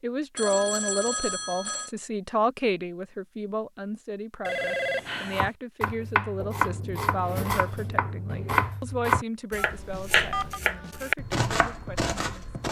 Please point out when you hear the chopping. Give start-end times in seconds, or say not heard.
5.3-12.6.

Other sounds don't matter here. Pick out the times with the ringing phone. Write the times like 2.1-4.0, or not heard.
0.3-1.9, 4.5-5.5, 9.7-10.6.